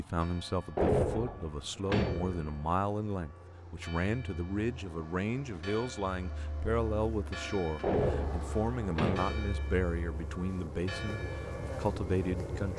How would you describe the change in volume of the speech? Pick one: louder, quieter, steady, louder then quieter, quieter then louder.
steady.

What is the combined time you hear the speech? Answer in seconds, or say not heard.
13 s.